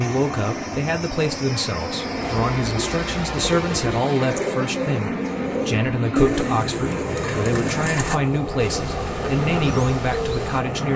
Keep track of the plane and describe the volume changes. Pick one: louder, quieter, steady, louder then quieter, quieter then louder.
steady.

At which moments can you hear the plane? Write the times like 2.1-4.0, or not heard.
0.0-10.9.